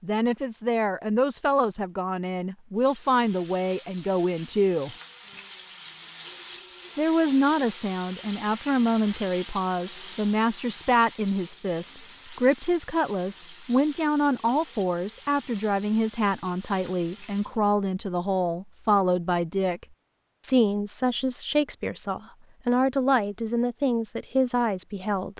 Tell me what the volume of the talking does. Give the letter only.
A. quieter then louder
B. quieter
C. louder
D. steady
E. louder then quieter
D.